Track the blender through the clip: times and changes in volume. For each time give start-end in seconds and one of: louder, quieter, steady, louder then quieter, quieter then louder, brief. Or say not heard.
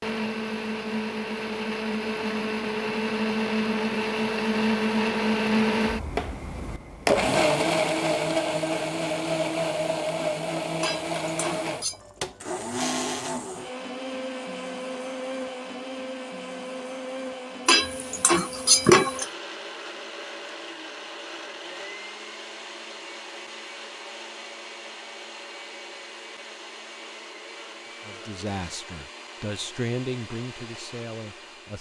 0.0-31.7 quieter.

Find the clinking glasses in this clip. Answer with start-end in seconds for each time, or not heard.
10.8-11.9, 17.6-19.2.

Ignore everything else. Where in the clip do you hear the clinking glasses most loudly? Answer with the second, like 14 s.
19 s.